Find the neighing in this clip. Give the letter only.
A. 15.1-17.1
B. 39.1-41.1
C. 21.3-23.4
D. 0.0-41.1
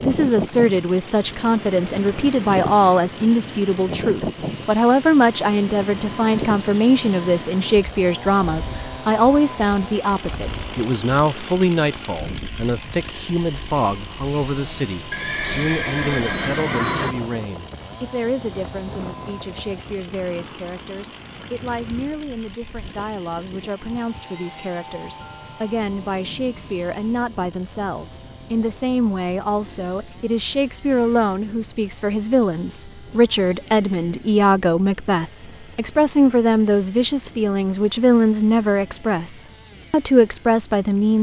A.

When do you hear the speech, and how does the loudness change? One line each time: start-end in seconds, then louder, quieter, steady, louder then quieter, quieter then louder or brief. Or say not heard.
0.0-41.1 quieter then louder.